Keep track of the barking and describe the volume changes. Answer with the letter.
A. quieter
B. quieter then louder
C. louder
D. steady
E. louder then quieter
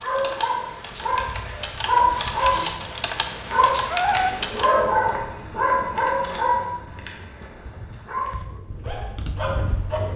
A.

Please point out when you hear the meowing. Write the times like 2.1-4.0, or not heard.
2.8-4.3.